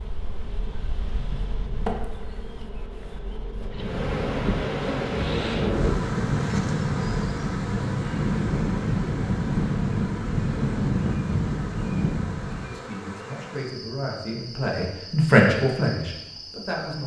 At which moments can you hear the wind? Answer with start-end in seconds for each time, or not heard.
0.0-12.8.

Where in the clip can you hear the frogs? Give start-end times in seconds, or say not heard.
not heard.